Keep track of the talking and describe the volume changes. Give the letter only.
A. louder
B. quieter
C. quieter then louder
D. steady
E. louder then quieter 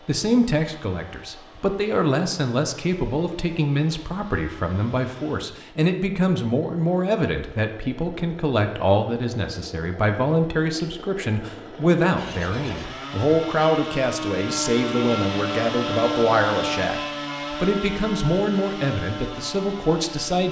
D.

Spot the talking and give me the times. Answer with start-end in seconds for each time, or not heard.
0.1-20.4.